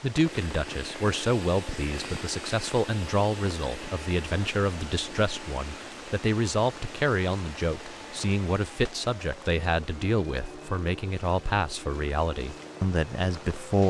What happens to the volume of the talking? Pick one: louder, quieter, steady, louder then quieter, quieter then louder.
steady.